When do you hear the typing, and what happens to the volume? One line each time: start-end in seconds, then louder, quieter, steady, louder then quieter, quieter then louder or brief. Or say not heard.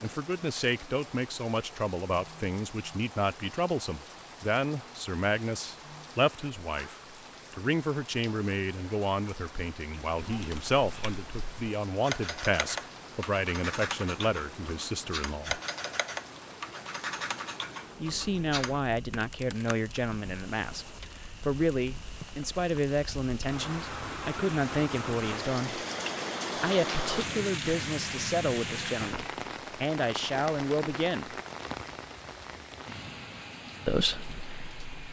10.2-19.9 steady.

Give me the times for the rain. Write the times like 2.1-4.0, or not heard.
0.0-35.0.